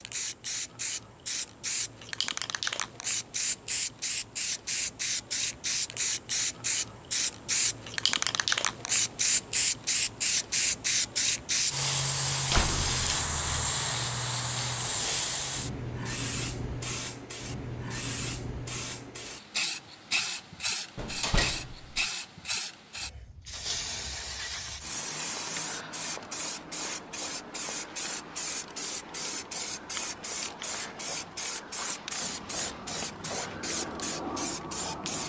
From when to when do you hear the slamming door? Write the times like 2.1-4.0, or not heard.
12.5-13.6, 20.9-22.1.